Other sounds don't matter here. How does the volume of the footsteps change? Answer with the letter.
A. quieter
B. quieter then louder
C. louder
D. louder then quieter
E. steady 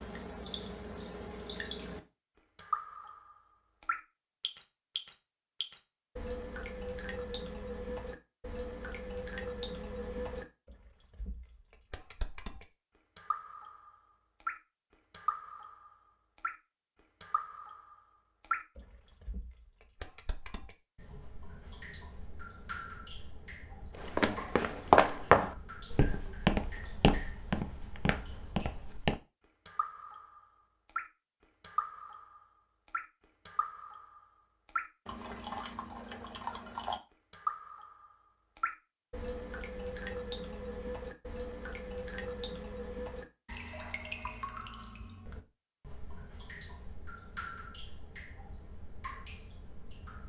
A.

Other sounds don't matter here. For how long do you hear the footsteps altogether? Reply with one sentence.
The footsteps can be heard for 5 seconds in total.